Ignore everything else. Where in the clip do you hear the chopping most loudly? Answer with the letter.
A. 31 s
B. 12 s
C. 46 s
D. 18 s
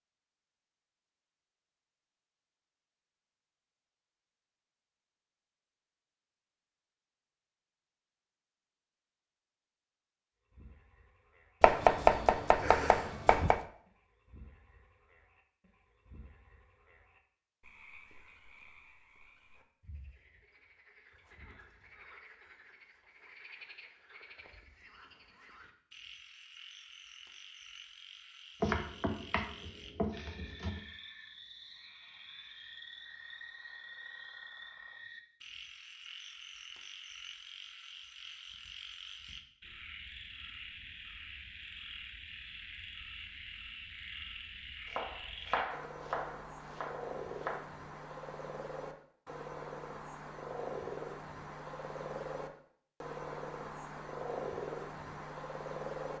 B.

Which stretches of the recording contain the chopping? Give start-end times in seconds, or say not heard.
11.6-13.6, 28.6-30.9, 44.9-47.6.